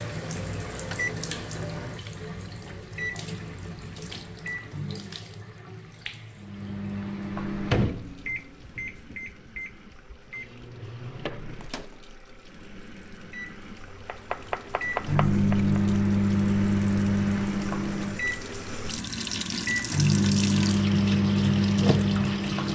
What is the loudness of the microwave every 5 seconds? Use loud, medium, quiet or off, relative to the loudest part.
quiet, medium, quiet, loud, loud.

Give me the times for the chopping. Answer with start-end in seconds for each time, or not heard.
14.1-16.0.